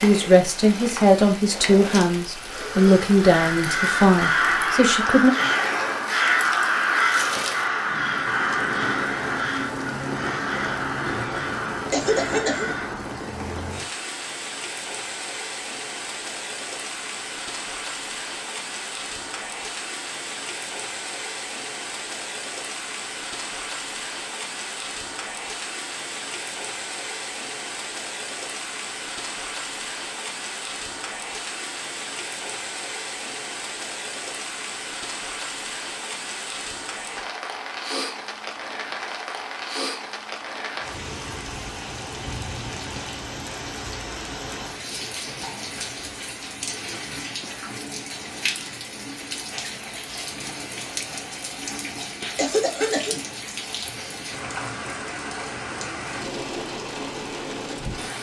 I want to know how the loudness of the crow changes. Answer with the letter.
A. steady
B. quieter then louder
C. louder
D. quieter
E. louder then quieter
D.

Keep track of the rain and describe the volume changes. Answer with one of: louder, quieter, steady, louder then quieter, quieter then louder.
steady.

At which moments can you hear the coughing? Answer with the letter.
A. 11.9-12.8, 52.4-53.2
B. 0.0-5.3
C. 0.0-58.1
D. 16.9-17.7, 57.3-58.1
A.